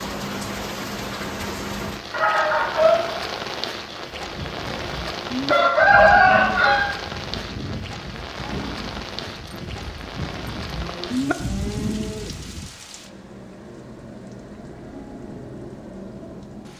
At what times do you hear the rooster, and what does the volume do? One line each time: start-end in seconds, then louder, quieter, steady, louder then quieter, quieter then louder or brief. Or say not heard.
2.1-6.8 quieter then louder.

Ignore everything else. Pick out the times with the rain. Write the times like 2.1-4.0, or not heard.
0.0-16.7.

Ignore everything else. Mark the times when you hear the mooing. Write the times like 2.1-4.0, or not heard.
4.2-12.7.